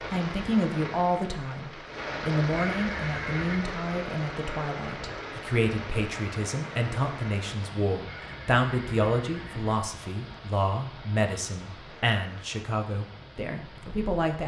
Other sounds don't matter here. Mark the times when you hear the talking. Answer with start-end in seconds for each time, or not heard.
0.0-14.4.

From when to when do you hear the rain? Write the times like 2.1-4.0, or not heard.
0.0-14.4.